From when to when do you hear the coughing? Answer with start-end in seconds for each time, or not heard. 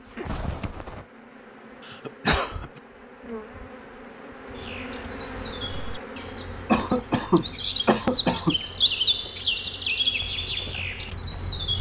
1.9-2.8, 6.7-8.6.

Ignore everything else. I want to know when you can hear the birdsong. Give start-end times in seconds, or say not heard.
4.5-11.7.